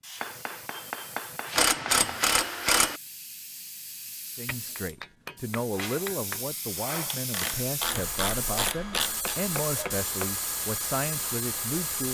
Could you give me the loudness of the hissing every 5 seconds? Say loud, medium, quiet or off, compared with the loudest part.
medium, loud, loud.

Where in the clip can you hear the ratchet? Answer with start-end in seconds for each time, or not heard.
1.5-3.0, 7.0-9.3.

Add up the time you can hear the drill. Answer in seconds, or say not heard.
not heard.